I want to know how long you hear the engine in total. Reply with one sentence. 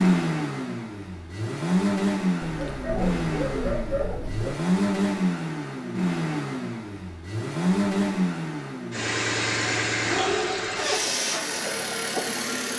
The engine can be heard for 13 seconds in total.